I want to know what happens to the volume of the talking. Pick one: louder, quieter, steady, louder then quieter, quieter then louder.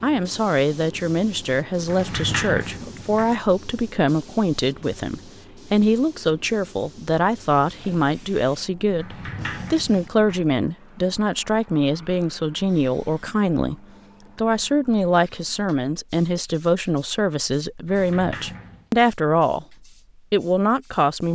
steady.